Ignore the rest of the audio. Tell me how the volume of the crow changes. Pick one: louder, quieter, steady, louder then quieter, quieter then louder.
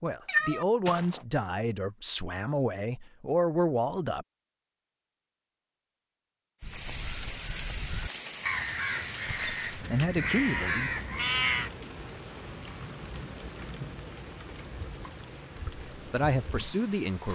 louder.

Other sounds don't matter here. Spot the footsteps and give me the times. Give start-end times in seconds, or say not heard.
not heard.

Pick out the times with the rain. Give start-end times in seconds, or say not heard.
6.6-17.3.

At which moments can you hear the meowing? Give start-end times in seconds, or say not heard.
0.2-1.2, 10.2-11.8.